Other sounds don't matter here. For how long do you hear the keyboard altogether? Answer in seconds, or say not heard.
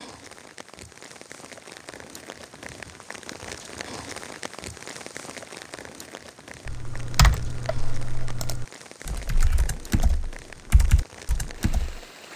5 s.